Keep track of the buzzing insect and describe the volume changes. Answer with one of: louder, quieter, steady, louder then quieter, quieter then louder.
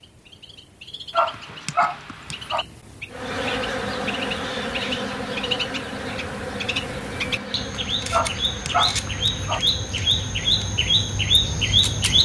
quieter.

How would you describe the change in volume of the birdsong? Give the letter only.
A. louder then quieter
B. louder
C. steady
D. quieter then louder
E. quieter
B.